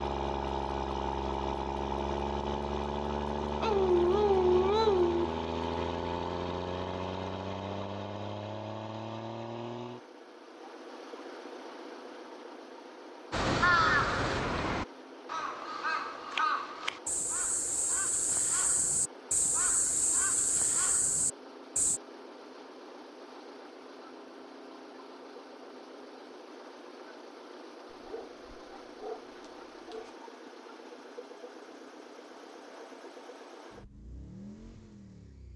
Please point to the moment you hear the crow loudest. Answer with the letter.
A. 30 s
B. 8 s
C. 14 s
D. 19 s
C.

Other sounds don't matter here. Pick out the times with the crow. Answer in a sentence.
The crow can be heard from 13.3 to 22.0 s.